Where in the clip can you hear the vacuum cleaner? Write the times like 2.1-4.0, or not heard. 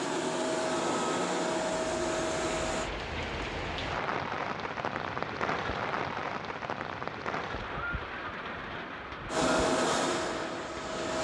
0.0-2.9, 9.3-11.1.